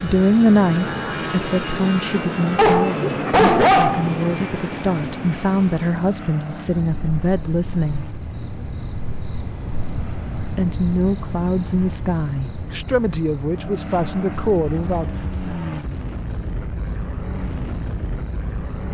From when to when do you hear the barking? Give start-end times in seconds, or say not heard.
2.5-4.5.